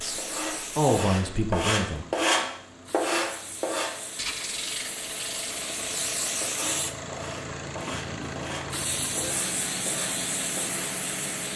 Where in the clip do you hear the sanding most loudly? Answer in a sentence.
The volume of the sanding peaks at 2 seconds.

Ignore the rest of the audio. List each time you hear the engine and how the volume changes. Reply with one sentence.
You can hear the engine from 0.0 to 11.5 s, getting louder.